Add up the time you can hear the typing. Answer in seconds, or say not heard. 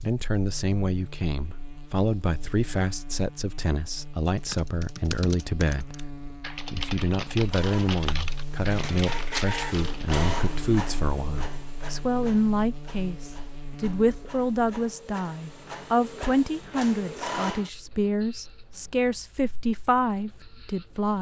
6 s.